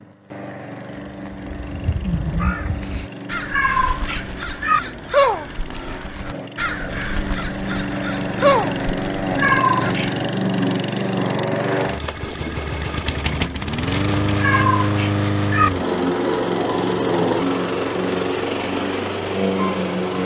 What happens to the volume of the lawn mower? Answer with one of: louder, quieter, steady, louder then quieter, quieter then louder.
louder.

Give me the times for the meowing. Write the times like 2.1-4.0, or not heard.
3.5-4.8, 9.3-10.2, 14.3-15.7.